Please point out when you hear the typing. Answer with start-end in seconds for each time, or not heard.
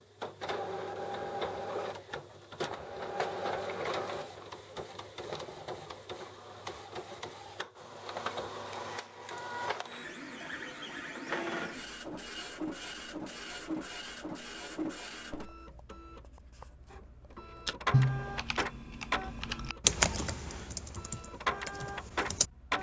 17.6-22.7.